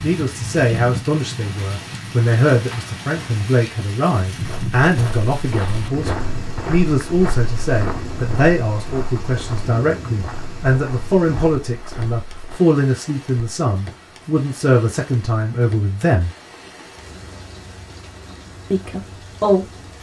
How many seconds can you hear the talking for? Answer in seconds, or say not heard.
17 s.